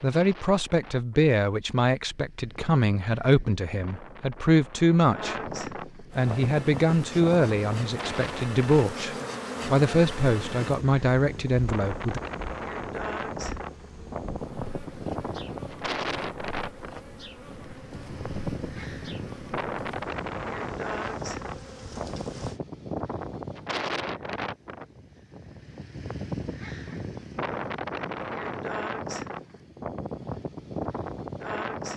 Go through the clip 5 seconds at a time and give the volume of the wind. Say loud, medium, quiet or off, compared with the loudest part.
quiet, loud, loud, loud, loud, loud, loud.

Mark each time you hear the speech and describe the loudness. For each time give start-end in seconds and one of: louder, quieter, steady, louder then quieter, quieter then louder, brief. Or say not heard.
0.0-12.2 steady.